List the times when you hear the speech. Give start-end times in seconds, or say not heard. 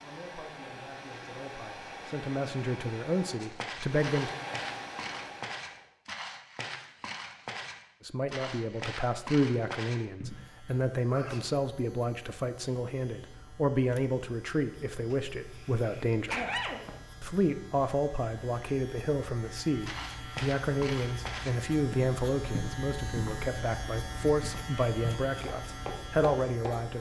0.0-4.3, 8.1-16.4, 17.2-26.9.